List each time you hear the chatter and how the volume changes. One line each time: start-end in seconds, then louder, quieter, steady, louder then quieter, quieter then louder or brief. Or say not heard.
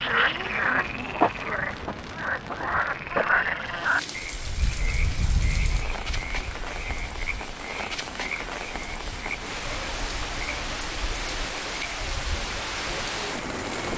not heard.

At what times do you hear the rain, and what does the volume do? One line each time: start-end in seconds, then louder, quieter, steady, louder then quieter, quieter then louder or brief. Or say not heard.
0.1-13.9 louder.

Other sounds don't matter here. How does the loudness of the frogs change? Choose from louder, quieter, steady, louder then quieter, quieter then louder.
quieter.